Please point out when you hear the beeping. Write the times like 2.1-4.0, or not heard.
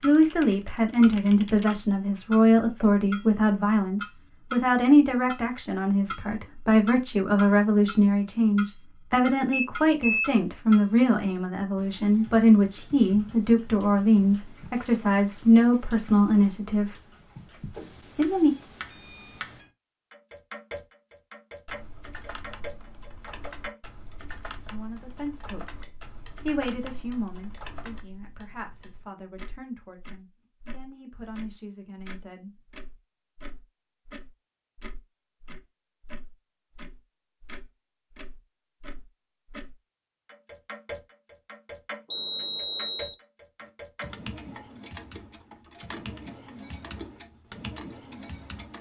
9.5-10.3, 17.8-19.8, 42.1-43.1.